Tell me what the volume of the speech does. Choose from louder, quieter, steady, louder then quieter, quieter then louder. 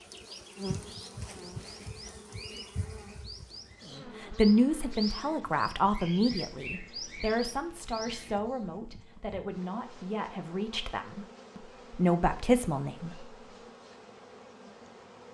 quieter then louder.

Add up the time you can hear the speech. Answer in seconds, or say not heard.
9 s.